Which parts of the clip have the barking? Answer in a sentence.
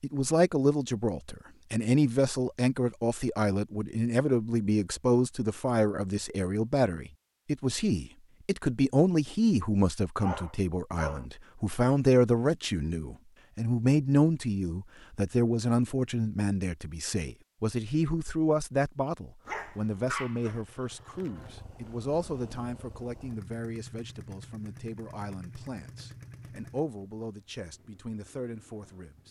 The barking can be heard from 10.2 to 11.2 s and from 19.4 to 20.6 s.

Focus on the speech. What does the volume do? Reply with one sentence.
The volume of the speech goes down.